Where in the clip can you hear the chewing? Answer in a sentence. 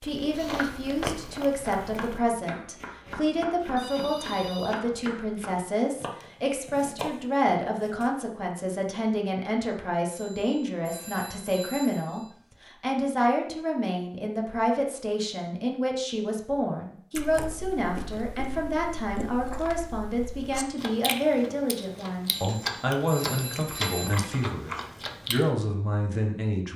The chewing can be heard from 0.0 to 2.2 s and from 17.1 to 25.5 s.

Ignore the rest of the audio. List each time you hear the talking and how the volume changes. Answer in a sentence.
You can hear the talking from 0.0 to 26.7 s, at a steady volume.